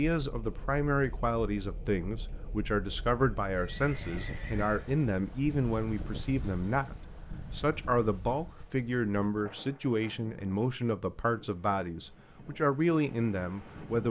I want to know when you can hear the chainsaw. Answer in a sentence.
The chainsaw can't be heard in this clip.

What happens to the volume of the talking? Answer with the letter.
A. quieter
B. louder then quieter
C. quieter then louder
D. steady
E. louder
D.